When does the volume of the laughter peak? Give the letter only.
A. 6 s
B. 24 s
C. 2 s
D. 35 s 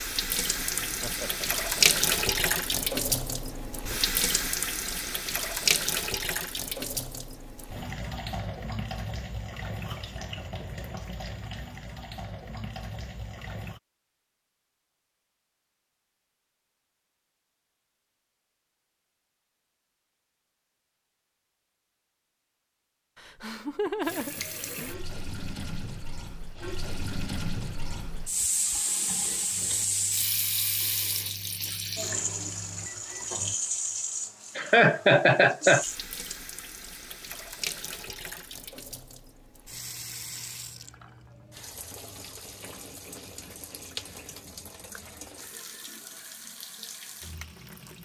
D.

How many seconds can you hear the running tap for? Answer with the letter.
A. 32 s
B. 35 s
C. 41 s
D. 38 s
D.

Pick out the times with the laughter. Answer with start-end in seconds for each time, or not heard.
0.8-1.5, 23.1-24.9, 34.5-35.9.